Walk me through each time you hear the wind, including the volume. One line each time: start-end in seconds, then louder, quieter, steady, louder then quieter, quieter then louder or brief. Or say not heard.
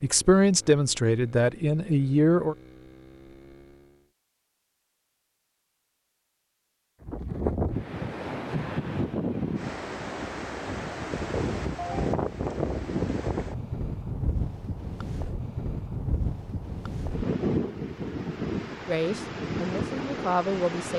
7.0-20.9 steady.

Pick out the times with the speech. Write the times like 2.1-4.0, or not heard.
0.0-2.5, 18.9-20.9.